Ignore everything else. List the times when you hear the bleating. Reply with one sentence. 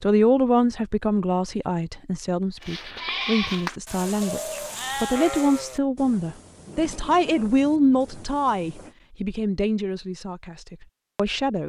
You can hear the bleating from 2.6 to 8.9 s.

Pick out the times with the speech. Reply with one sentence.
You can hear the speech from 0.0 to 11.6 s.